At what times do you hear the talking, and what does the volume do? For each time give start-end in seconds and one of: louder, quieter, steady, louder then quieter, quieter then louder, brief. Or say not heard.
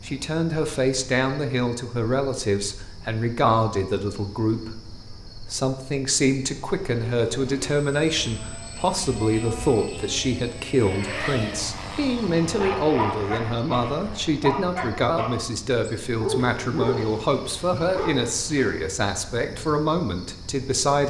0.0-21.0 steady.